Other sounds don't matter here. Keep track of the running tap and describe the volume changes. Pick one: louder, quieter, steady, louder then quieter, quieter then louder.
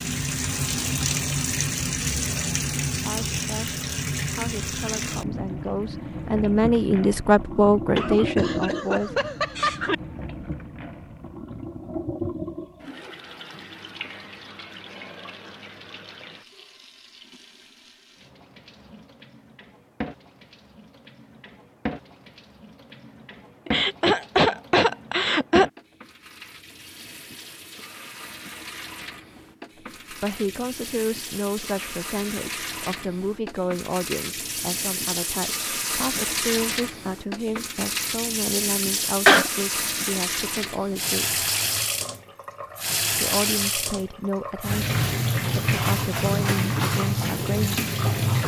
quieter then louder.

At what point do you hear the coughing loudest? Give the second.
39 s.